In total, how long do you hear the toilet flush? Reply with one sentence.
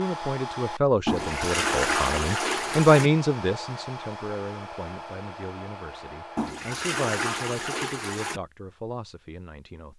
You can hear the toilet flush for 4 seconds altogether.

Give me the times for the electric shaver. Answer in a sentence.
The electric shaver can't be heard in this clip.